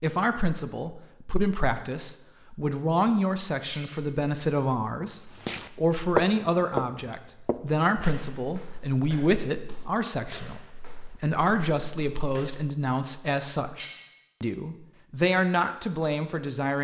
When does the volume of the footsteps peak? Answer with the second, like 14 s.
6 s.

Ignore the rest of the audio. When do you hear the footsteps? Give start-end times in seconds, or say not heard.
5.3-12.7.